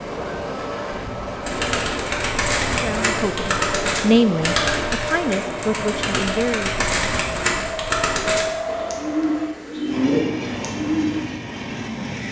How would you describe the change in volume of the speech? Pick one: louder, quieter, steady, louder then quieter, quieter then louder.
louder then quieter.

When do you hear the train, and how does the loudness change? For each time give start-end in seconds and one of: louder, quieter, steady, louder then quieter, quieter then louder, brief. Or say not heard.
0.0-12.2 steady.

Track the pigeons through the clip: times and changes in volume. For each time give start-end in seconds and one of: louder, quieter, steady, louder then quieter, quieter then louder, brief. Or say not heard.
1.4-11.2 steady.